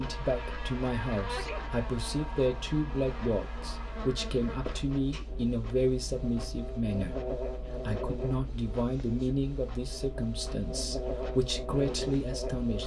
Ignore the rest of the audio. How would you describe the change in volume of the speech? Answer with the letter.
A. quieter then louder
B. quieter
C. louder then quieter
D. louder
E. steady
E.